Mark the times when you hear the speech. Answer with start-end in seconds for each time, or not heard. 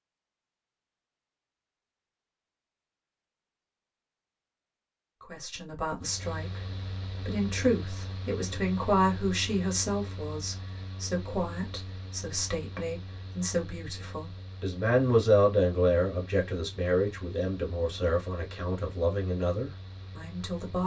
5.2-20.8.